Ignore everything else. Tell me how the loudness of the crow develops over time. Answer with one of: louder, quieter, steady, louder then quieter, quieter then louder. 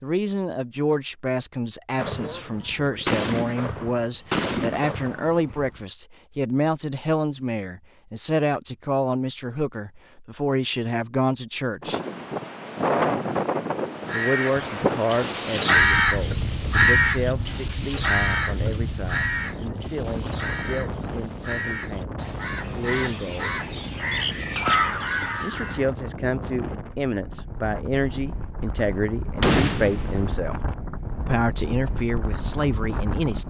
quieter then louder.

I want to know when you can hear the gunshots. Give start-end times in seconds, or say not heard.
1.9-5.7, 29.4-30.4.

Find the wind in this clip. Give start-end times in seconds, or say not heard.
11.8-33.4.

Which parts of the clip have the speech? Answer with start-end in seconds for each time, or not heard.
0.0-12.0, 14.1-23.6, 25.4-30.6, 31.2-33.4.